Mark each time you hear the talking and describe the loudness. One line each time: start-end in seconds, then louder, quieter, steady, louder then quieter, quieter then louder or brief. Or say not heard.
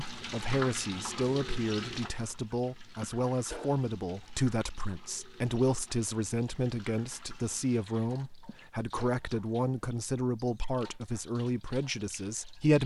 0.1-12.8 steady.